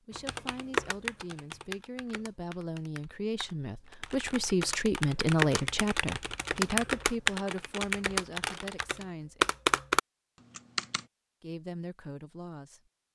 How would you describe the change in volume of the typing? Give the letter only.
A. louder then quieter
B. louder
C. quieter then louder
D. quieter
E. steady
C.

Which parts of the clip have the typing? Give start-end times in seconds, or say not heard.
0.1-11.0.